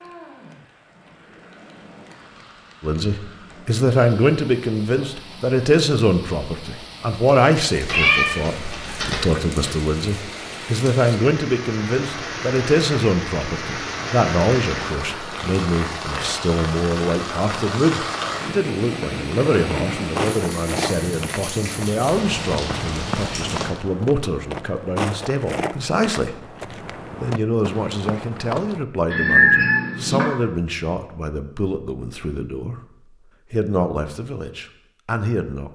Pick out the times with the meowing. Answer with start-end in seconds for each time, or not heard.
7.8-9.8, 29.1-30.2.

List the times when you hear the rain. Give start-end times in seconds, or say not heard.
0.0-23.8.